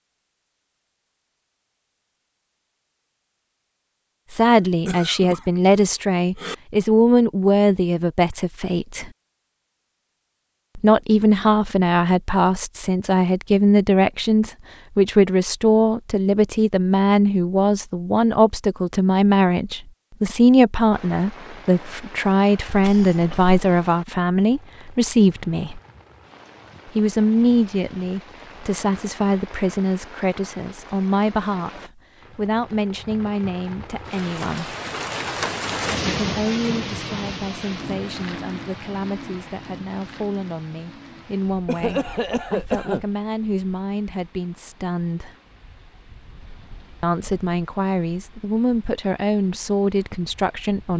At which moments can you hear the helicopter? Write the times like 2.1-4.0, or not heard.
not heard.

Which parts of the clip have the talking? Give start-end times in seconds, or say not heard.
4.3-9.1, 10.8-25.8, 26.9-34.8, 36.1-45.4, 47.0-50.9.